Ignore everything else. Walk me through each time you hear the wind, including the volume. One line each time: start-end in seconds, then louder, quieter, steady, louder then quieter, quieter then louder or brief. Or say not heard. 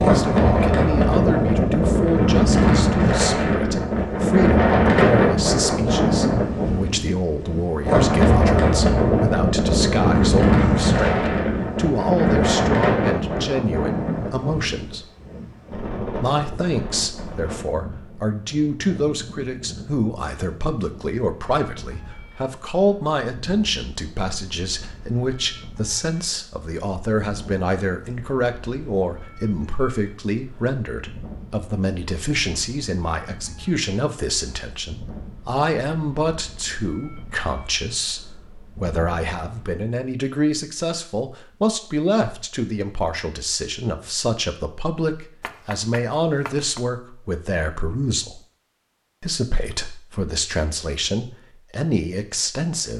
0.0-39.7 quieter.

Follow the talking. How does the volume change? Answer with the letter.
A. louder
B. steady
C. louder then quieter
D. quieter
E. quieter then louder
B.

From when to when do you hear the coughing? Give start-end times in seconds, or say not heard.
not heard.